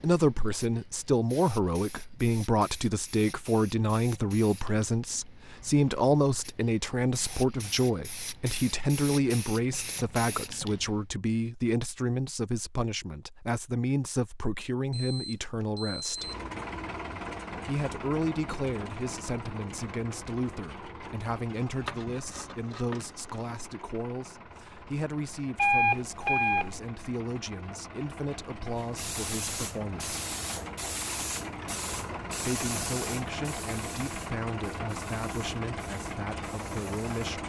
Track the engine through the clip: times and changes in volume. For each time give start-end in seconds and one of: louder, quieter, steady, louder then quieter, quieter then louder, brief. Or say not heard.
16.1-37.4 quieter then louder.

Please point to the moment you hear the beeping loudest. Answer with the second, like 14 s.
26 s.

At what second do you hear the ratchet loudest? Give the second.
22 s.